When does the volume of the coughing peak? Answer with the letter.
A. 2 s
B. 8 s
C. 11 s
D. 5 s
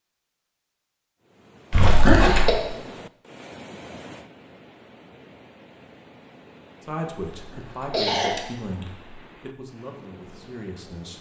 A.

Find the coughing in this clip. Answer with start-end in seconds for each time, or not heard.
1.7-2.5, 7.3-9.2.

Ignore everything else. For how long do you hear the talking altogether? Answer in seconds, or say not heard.
4 s.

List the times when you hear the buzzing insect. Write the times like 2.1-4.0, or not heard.
not heard.